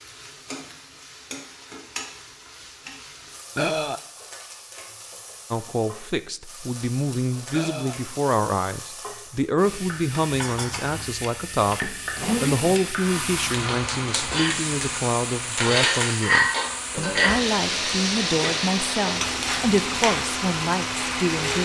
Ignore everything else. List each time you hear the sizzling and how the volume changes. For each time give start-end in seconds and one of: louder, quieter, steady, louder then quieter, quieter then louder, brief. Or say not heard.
0.0-21.6 louder.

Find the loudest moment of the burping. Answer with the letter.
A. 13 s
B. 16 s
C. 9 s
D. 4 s
D.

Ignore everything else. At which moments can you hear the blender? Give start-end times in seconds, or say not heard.
11.8-21.6.